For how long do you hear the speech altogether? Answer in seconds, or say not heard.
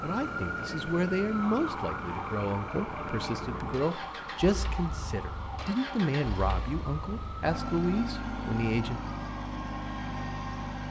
9 s.